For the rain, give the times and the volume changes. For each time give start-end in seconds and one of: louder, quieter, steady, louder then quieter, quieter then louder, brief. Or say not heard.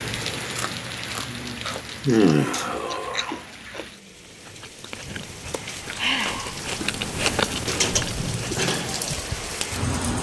0.0-10.1 quieter then louder.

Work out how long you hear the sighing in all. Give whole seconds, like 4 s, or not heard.
2 s.